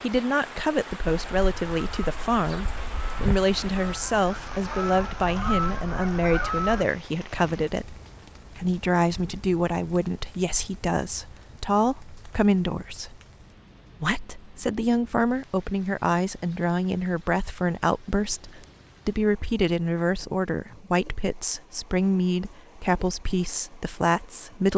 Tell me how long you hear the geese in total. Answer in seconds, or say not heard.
6 s.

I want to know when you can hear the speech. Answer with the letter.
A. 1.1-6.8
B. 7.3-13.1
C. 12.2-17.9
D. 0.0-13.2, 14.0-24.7
D.